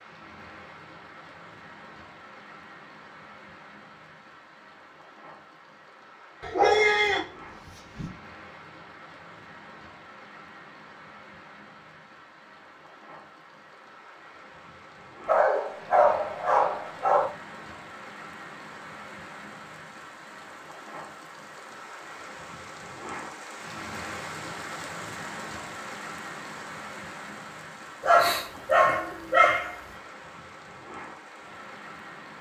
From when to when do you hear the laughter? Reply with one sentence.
You can't hear the laughter here.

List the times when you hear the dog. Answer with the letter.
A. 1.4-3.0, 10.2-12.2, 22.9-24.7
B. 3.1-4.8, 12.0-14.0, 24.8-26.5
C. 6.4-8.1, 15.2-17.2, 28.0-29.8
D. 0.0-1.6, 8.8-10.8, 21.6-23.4
C.